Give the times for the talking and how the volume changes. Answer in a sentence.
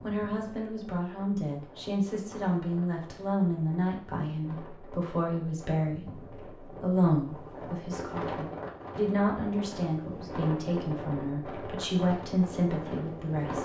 The talking can be heard from 0.0 to 13.5 s, at a steady volume.